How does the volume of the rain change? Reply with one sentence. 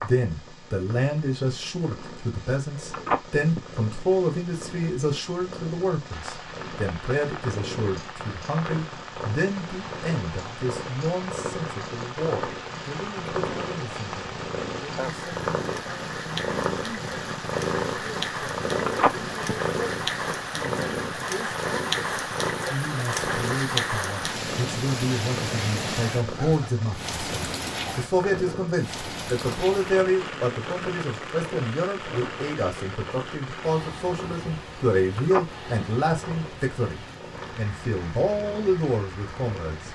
The volume of the rain goes up, then down.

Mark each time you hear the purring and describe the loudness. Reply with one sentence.
The purring can be heard from 0.0 to 39.8 s, getting louder then quieter.